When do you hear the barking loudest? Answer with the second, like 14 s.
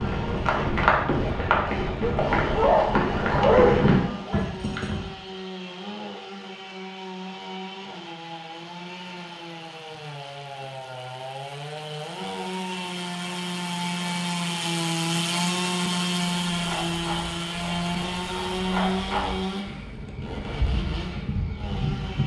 4 s.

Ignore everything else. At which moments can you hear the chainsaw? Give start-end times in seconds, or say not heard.
0.0-22.2.